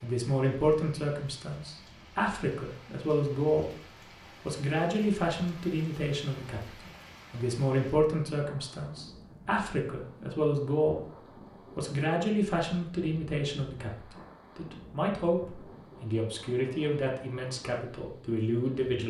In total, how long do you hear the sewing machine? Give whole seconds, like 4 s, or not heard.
not heard.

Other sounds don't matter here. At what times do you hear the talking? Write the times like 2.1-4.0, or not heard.
0.0-3.8, 4.5-11.1, 11.8-19.0.